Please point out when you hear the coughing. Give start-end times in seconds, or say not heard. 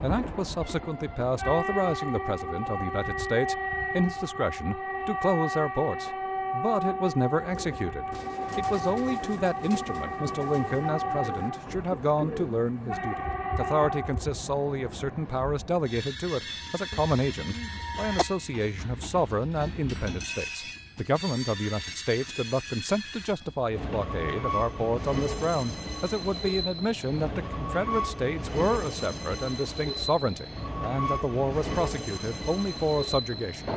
16.9-18.2.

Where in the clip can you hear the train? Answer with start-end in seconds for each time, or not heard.
0.0-33.7.